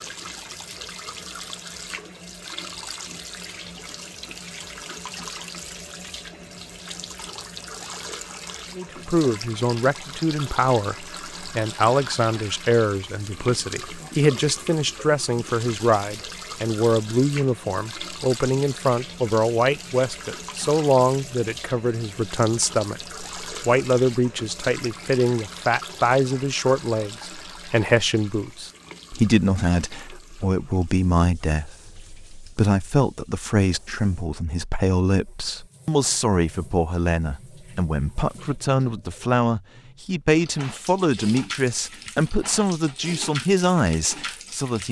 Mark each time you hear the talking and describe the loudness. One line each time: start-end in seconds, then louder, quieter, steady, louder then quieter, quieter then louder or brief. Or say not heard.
8.8-44.8 steady.